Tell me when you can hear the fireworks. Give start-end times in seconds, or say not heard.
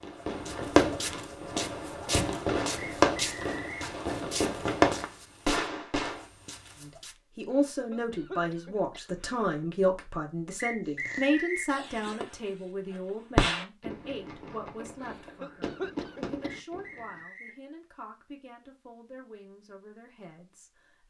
0.0-6.2, 10.8-12.5, 13.3-17.2.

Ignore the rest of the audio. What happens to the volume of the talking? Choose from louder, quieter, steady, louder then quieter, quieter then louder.
quieter.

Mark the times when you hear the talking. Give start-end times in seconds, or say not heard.
6.8-21.0.